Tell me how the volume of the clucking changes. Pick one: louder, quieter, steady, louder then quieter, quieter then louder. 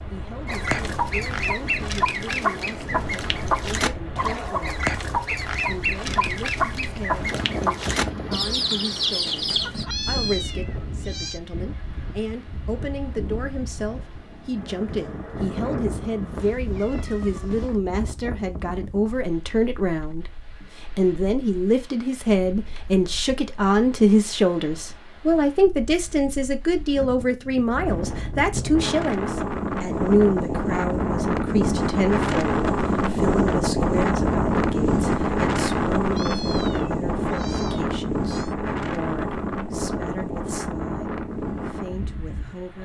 steady.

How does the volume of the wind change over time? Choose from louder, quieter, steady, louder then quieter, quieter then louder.
quieter then louder.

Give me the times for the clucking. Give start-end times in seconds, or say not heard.
0.5-9.8.